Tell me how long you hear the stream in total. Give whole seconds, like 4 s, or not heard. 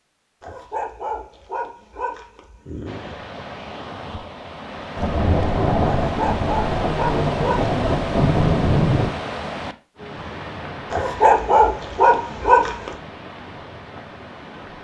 12 s.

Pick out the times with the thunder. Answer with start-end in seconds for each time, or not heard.
5.0-9.2.